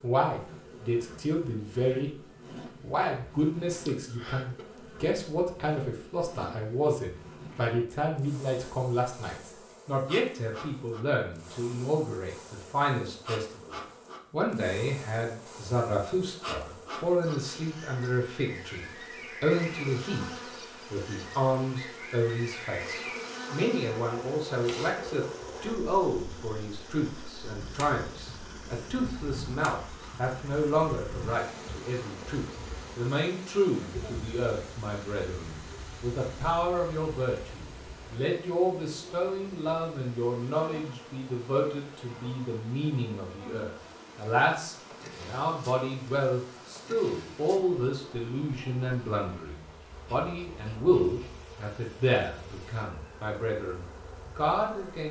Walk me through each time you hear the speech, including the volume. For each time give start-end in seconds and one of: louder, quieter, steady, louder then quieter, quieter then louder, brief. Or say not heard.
0.0-2.1 brief
2.8-55.0 steady.